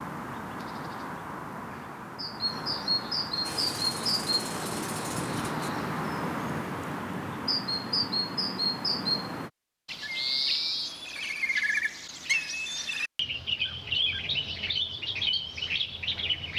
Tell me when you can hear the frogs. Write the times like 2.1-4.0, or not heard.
not heard.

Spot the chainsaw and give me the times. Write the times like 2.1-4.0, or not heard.
3.4-5.7.